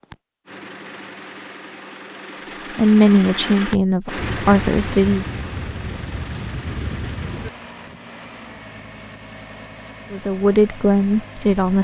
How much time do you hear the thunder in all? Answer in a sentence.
The thunder can be heard for 3 seconds in total.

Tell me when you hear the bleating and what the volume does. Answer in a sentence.
The bleating can't be heard in this clip.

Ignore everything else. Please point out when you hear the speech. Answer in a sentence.
The speech can be heard from 2.8 to 5.3 s and from 10.1 to 11.7 s.